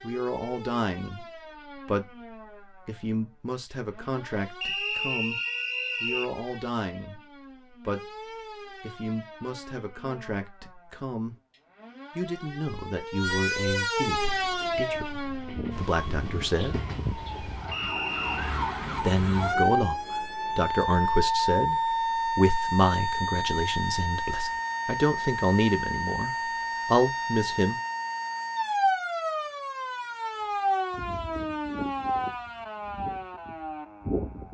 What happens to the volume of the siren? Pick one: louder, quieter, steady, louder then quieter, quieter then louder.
louder.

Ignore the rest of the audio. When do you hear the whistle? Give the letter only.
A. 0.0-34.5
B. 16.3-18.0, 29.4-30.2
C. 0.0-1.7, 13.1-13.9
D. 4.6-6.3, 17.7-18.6
D.